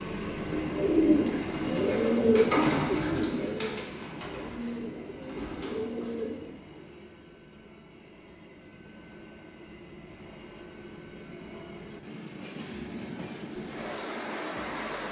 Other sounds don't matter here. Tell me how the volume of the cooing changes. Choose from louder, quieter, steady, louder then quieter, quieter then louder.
quieter.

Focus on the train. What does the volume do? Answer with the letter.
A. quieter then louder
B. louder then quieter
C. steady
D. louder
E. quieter
A.